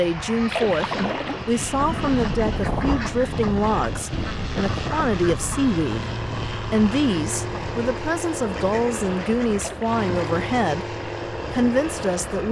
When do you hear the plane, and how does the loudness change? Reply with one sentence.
You can hear the plane from 0.0 to 12.4 s, at a steady volume.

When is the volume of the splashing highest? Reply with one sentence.
The loudest moment of the splashing is at 1 second.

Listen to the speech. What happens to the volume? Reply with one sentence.
The volume of the speech stays about the same.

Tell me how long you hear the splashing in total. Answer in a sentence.
You can hear the splashing for 2 seconds altogether.